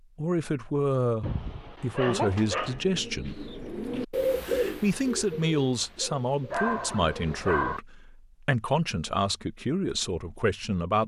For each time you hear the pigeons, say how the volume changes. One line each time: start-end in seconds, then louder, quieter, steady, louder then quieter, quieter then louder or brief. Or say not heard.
2.1-7.8 louder then quieter.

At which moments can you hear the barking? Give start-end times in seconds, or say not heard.
1.2-2.9, 6.5-7.8.